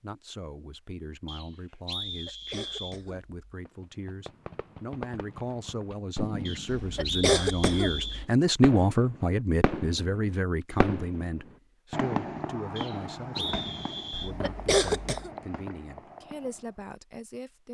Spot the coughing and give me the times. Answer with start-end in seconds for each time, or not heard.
2.1-3.3, 6.7-8.1, 14.1-15.3.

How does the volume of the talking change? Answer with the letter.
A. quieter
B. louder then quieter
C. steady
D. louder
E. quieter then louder
B.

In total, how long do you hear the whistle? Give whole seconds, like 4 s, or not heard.
5 s.